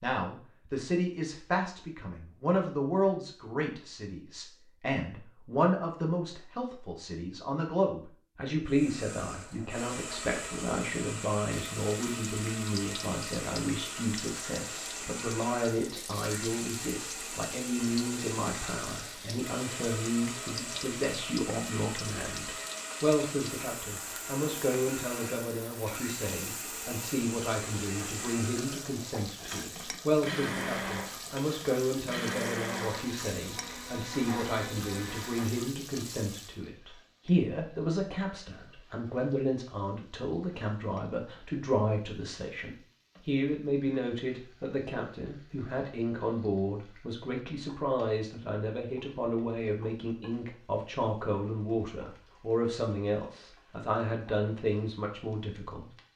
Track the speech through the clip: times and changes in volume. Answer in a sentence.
The speech can be heard from 0.0 to 56.1 s, at a steady volume.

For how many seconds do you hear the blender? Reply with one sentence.
The blender can be heard for 27 seconds in total.